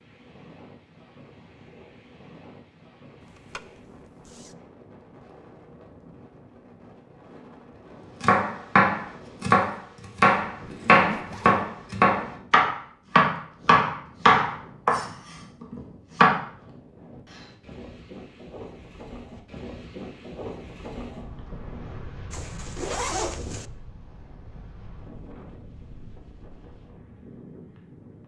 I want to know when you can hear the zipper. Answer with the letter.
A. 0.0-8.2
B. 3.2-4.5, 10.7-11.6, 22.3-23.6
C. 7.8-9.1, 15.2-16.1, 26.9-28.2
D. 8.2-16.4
B.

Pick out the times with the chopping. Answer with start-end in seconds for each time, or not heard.
8.2-16.4.